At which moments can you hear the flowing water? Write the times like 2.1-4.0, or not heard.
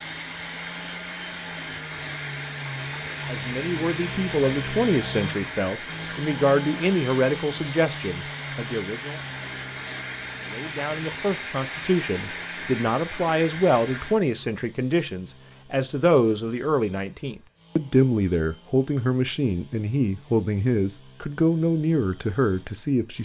0.0-14.2.